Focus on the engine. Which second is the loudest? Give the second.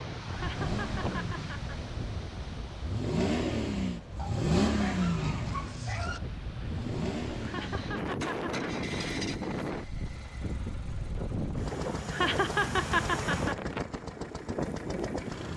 5 s.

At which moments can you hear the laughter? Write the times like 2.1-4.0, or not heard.
0.3-1.9, 7.4-8.7, 12.1-13.7.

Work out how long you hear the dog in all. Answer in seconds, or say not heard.
2 s.